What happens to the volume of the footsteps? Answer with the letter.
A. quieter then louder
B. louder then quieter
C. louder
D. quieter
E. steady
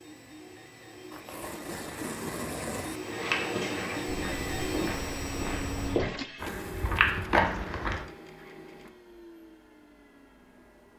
C.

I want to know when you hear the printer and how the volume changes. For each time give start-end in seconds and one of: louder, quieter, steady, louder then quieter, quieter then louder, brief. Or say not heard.
0.0-10.9 louder then quieter.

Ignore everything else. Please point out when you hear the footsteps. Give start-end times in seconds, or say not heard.
3.0-8.1.